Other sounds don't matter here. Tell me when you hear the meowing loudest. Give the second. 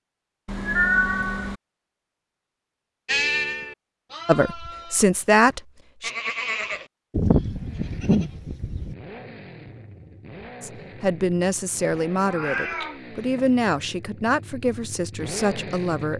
1 s.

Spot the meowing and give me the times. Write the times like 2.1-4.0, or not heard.
0.5-1.6, 12.2-13.4.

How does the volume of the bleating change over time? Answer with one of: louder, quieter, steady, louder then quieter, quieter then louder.
quieter then louder.